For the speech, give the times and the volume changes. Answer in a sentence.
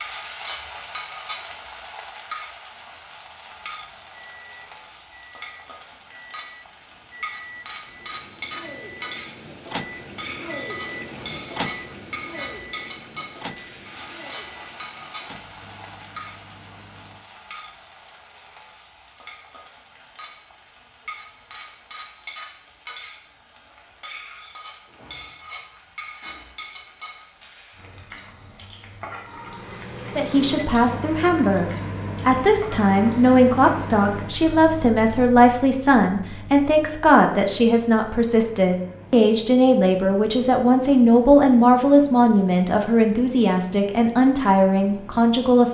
The speech can be heard from 30.1 to 45.6 s, at a steady volume.